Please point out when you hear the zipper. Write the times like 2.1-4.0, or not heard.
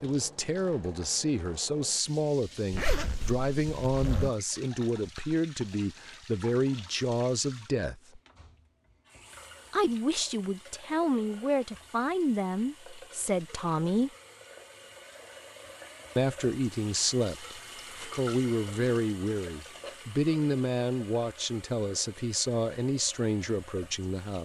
2.7-4.3.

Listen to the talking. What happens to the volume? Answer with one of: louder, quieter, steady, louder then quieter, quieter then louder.
steady.